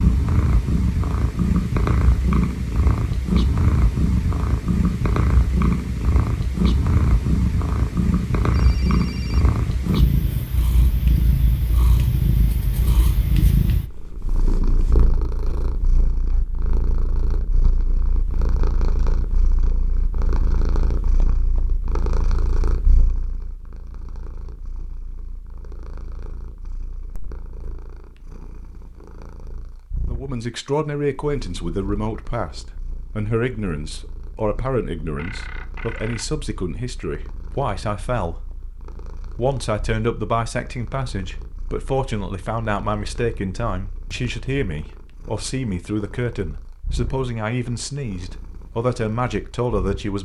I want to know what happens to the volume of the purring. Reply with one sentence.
The loudness of the purring goes down.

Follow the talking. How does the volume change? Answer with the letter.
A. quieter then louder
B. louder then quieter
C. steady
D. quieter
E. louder
C.